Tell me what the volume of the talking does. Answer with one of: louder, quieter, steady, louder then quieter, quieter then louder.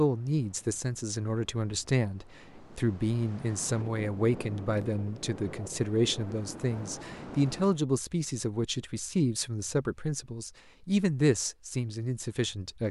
steady.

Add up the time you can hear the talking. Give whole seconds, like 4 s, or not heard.
13 s.